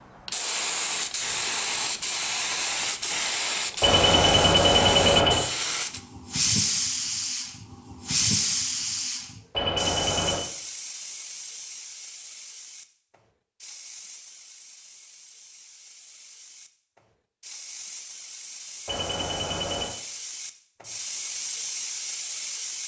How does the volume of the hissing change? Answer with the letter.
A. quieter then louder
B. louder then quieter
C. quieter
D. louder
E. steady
A.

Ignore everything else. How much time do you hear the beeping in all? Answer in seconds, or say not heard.
4 s.